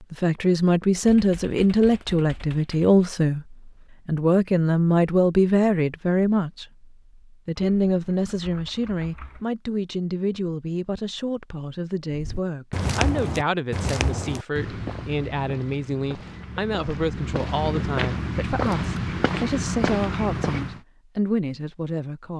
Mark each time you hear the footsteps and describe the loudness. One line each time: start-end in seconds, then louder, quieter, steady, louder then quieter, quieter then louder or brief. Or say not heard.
12.1-20.8 quieter then louder.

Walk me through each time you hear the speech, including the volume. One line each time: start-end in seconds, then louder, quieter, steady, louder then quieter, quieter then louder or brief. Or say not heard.
0.1-6.7 steady
7.5-22.3 steady.